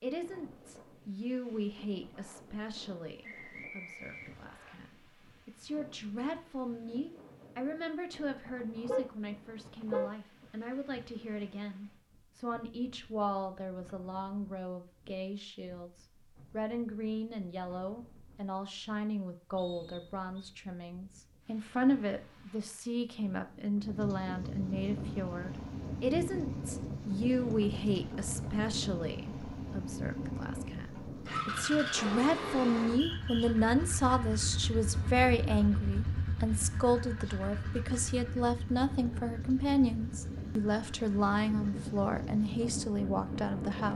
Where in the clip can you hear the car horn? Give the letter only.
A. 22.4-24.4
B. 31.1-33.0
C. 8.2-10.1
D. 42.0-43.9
C.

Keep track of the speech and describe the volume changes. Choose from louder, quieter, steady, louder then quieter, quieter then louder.
louder.